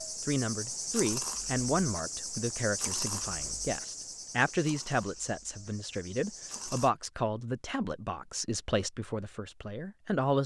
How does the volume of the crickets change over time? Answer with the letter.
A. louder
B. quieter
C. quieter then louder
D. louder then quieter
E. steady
B.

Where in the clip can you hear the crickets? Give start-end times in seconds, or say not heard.
0.0-6.9.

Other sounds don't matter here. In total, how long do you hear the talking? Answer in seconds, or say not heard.
10 s.